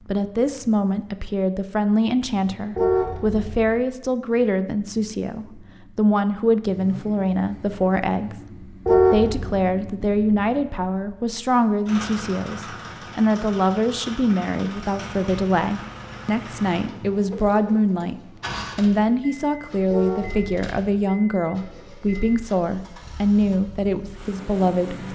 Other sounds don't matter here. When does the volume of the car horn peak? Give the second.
9 s.